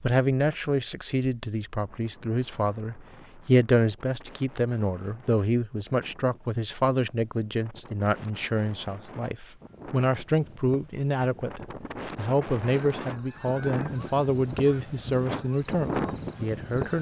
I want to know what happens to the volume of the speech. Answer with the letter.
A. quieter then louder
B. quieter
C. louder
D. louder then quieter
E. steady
E.